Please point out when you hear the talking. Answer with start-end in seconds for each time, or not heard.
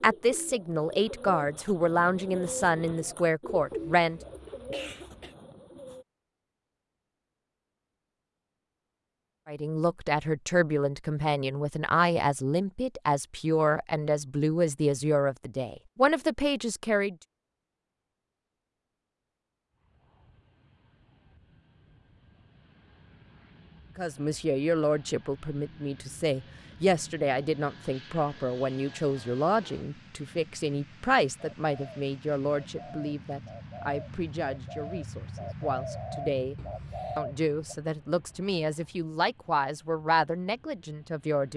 0.0-4.2, 9.4-17.1, 23.9-36.5, 37.1-41.5.